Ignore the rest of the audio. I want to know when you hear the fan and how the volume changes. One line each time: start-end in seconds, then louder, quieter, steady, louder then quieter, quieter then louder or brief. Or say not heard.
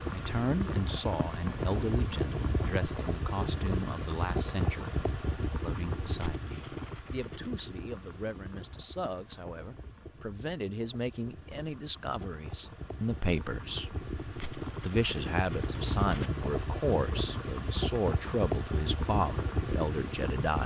0.0-20.6 quieter then louder.